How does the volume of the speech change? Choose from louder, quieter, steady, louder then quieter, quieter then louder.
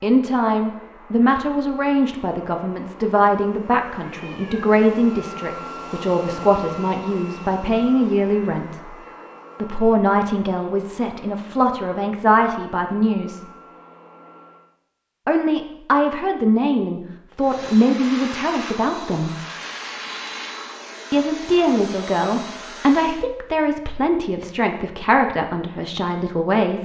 steady.